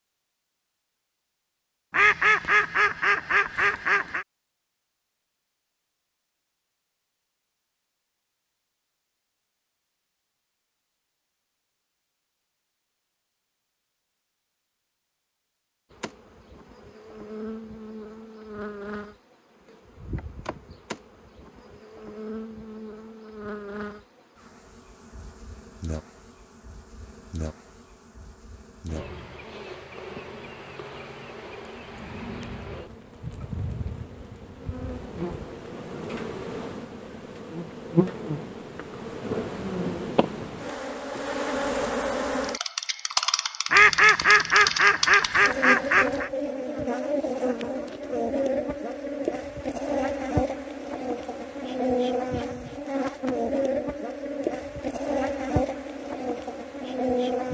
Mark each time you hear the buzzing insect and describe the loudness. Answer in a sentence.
You can hear the buzzing insect from 15.9 to 57.4 s, getting louder.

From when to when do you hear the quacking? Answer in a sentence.
You can hear the quacking from 1.9 to 4.2 s and from 43.7 to 46.3 s.